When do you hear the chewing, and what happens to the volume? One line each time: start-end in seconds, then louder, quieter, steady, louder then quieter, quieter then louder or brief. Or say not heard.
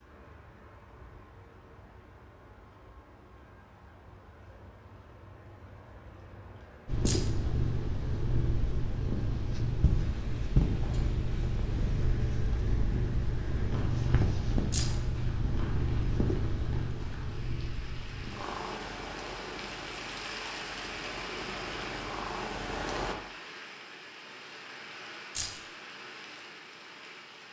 not heard.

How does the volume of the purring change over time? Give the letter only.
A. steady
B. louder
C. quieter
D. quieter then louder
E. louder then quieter
C.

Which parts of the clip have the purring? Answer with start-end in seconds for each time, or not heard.
6.8-23.1.